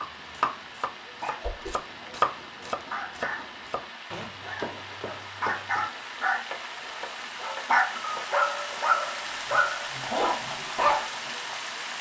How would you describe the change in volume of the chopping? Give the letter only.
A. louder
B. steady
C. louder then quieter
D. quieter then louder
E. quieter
E.